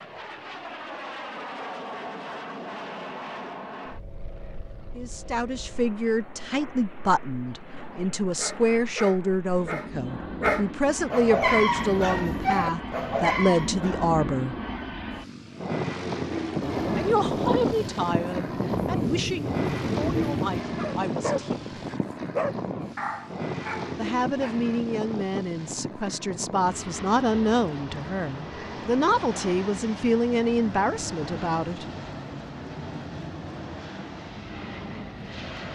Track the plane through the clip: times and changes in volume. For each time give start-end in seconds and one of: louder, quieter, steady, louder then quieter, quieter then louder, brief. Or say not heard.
0.0-35.6 louder then quieter.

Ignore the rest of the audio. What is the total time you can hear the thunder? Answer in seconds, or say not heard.
4 s.